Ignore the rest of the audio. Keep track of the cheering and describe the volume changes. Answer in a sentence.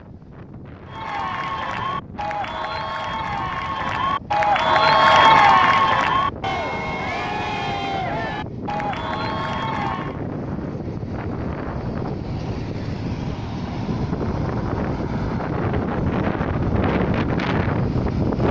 The volume of the cheering goes up, then down.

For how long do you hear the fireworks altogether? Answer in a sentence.
You can't hear the fireworks here.